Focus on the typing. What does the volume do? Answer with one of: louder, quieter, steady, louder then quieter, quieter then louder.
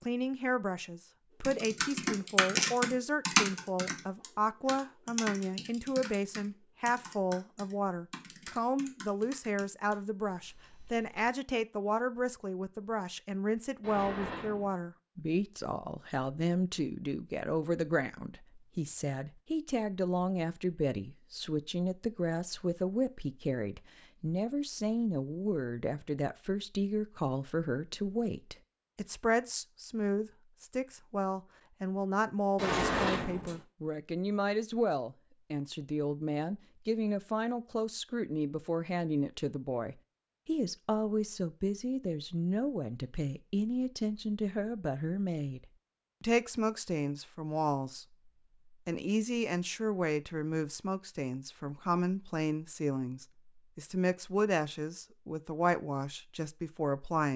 quieter.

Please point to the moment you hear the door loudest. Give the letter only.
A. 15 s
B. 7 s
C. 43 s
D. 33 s
D.